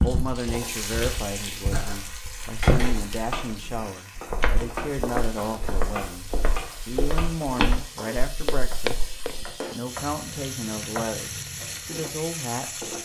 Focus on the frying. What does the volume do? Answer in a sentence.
The loudness of the frying goes down, then up.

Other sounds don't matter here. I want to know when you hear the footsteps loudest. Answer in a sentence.
The volume of the footsteps peaks at 3 seconds.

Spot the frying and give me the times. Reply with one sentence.
You can hear the frying from 0.0 to 13.0 s.